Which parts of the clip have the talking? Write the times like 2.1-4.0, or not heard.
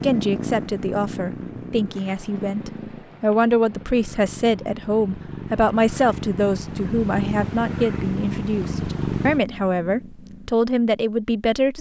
0.0-11.7.